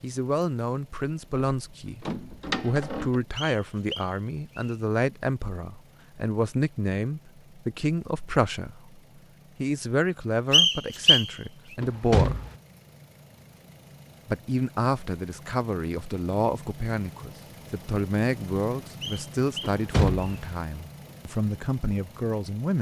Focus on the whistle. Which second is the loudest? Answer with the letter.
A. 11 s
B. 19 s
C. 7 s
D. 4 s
A.